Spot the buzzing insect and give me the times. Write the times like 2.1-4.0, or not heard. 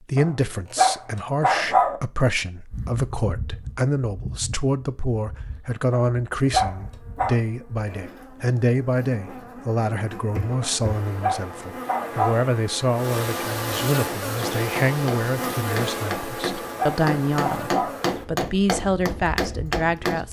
2.6-20.2.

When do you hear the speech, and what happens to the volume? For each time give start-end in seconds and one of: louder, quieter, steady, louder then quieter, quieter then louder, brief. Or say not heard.
0.0-20.2 steady.